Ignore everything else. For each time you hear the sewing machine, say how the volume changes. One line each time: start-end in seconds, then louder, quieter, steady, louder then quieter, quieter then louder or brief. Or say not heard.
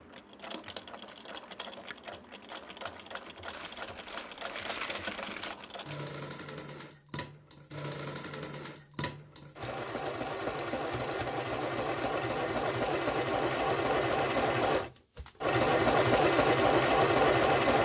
0.0-17.7 louder.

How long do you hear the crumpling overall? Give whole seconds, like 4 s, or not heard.
2 s.